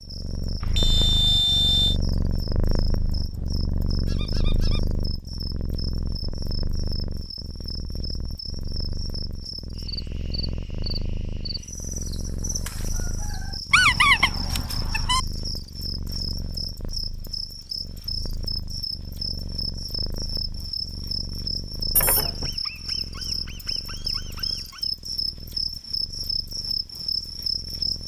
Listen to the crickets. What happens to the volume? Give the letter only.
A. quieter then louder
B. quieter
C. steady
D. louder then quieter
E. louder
E.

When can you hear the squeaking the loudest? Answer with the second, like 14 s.
14 s.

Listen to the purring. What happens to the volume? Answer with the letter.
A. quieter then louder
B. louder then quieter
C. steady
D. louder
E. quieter
E.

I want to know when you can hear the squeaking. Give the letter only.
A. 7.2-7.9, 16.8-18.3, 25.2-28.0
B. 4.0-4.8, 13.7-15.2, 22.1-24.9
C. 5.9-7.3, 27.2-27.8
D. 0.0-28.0
B.